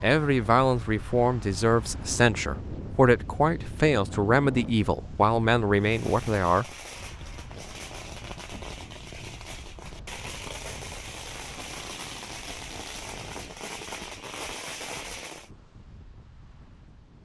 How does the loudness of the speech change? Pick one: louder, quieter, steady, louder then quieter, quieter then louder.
steady.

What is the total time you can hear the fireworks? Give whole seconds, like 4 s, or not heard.
10 s.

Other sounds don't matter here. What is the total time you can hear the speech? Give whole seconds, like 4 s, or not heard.
7 s.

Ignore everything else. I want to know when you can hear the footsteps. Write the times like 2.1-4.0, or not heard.
not heard.